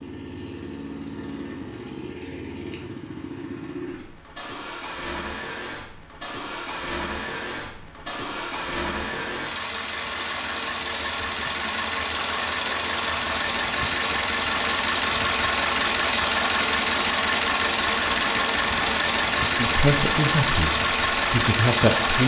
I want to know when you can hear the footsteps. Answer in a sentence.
You can't hear the footsteps here.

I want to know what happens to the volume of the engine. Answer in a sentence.
The volume of the engine goes up.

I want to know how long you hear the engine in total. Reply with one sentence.
The engine can be heard for 22 seconds in total.